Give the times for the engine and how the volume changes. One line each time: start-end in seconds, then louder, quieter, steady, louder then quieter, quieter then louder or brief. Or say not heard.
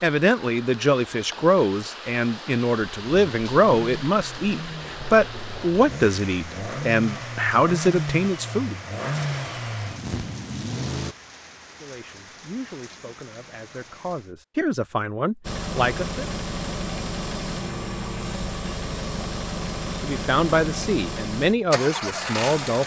3.0-11.2 louder
15.4-22.8 steady.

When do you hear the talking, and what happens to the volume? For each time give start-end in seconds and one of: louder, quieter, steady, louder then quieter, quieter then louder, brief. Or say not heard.
0.0-8.8 steady
11.8-16.2 quieter then louder
20.0-22.8 brief.